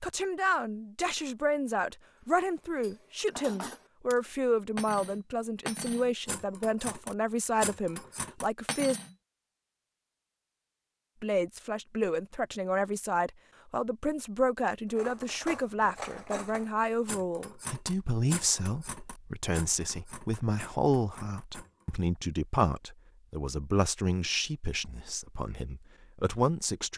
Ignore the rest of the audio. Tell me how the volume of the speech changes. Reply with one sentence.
The loudness of the speech stays about the same.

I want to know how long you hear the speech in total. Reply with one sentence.
The speech can be heard for 25 seconds in total.